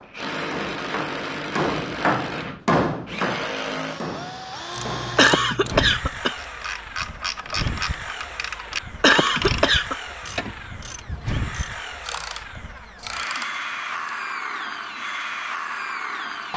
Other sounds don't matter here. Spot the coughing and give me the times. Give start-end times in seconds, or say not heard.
5.2-6.3, 9.0-9.9.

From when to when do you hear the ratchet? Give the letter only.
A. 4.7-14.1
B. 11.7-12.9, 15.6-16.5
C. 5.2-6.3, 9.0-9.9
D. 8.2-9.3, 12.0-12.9
A.